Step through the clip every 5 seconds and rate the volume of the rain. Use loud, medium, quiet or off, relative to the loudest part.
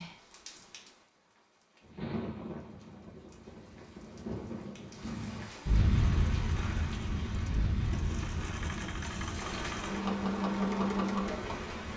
medium, loud, medium.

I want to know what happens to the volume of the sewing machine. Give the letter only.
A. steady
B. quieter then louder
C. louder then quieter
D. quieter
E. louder
E.